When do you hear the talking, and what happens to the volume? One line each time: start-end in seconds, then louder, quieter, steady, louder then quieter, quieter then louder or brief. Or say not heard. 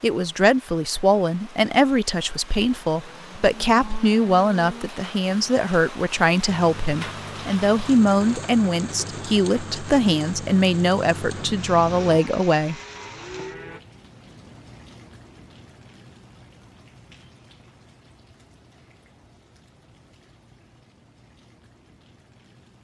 0.0-12.8 steady.